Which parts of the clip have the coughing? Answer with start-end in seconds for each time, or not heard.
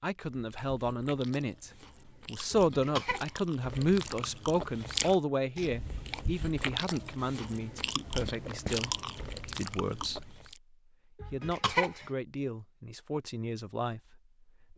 2.5-3.2, 11.2-12.1.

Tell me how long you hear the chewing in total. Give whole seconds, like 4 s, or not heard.
10 s.